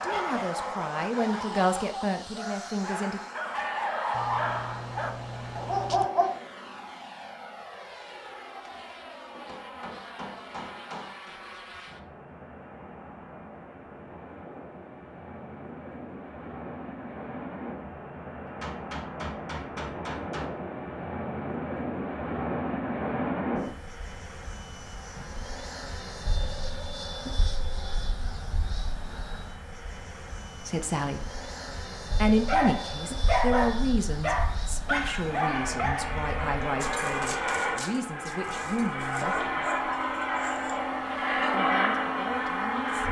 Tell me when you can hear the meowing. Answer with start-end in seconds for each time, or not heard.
4.1-6.0.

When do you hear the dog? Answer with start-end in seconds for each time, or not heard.
0.0-6.4, 32.5-41.6.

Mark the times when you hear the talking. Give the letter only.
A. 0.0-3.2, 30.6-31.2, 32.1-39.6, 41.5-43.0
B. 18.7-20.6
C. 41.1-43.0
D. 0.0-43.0
A.